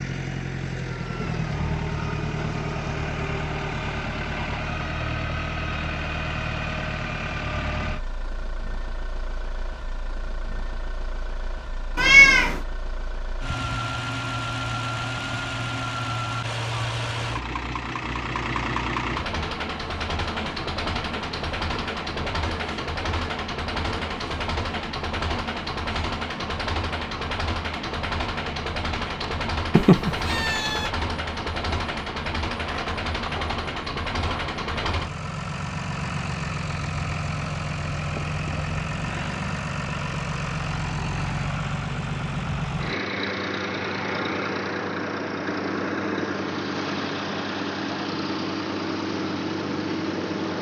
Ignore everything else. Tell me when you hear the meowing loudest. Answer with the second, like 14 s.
12 s.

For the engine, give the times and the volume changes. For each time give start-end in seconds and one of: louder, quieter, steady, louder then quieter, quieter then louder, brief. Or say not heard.
0.0-50.5 steady.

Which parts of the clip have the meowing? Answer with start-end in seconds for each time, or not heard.
11.9-12.6, 29.8-30.9.